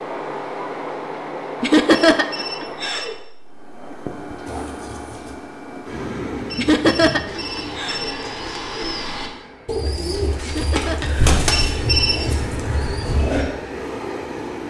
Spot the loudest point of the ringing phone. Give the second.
12 s.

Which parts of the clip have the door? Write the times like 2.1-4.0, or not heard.
not heard.